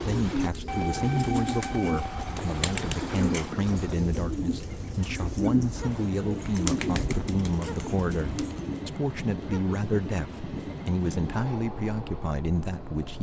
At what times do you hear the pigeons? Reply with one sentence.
You can hear the pigeons from 0.0 to 8.8 s.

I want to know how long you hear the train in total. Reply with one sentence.
You can hear the train for 13 seconds altogether.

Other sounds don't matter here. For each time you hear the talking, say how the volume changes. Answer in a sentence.
The talking can be heard from 0.0 to 13.1 s, at a steady volume.